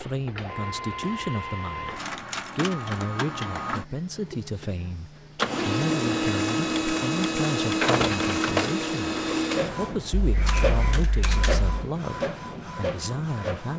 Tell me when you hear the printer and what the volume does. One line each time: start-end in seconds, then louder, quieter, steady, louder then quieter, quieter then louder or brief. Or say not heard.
0.0-13.7 louder then quieter.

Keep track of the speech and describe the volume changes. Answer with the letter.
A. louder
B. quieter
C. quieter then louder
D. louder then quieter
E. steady
E.